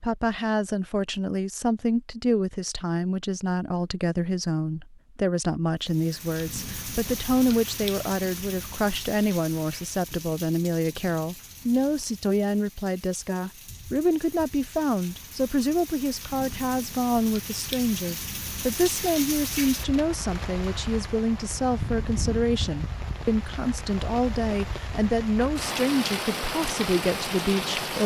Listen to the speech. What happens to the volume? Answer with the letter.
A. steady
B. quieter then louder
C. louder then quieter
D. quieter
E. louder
A.